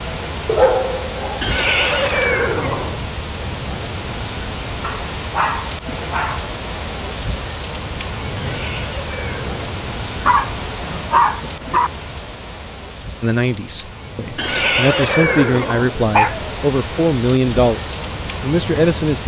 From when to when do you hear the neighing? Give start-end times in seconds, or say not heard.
1.4-3.0, 8.3-9.6, 14.3-15.9.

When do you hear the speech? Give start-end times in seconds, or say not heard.
13.2-19.2.